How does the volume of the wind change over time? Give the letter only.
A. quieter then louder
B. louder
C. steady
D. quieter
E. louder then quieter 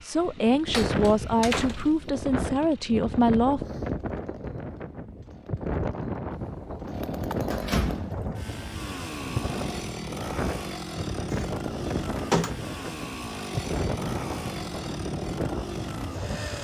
C.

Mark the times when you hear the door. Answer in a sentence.
The door can be heard from 0.7 to 2.0 s, from 6.3 to 8.1 s and from 11.3 to 12.7 s.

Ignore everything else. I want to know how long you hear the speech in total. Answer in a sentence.
The speech can be heard for 4 seconds in total.